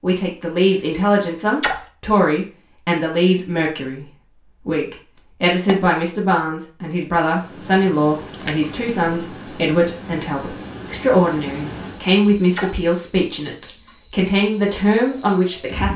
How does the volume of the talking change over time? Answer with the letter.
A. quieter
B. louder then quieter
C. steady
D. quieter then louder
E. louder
C.